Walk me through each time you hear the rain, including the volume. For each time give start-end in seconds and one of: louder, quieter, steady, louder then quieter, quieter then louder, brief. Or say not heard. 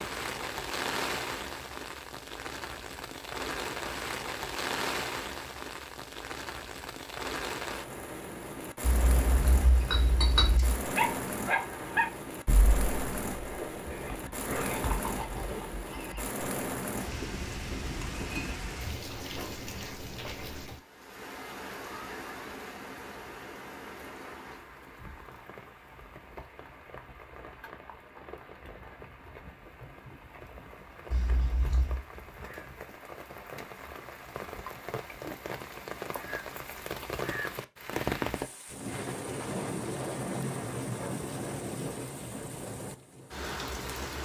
0.0-44.1 quieter then louder.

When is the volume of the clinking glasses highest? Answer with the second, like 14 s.
10 s.